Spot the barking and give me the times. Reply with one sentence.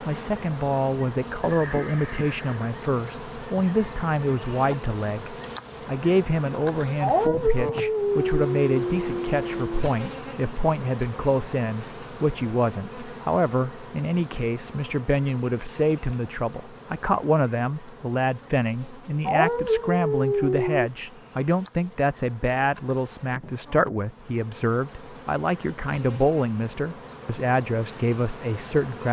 The barking can be heard from 7.0 to 9.8 s and from 19.2 to 20.9 s.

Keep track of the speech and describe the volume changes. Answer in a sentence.
The volume of the speech stays about the same.